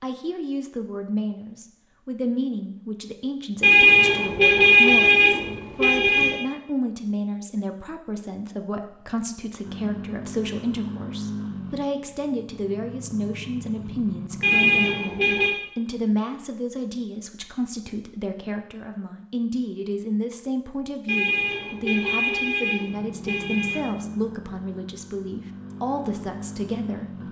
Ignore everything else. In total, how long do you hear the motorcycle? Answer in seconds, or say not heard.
10 s.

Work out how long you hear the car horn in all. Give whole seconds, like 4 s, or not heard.
7 s.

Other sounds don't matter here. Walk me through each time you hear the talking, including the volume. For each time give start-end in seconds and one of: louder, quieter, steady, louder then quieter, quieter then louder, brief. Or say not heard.
0.0-27.2 steady.